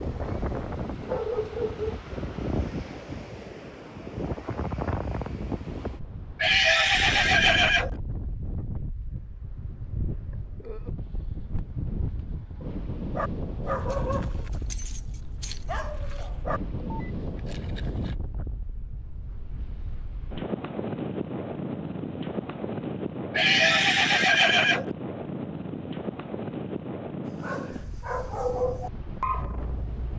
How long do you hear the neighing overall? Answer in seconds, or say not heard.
3 s.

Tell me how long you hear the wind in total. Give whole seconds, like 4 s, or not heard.
30 s.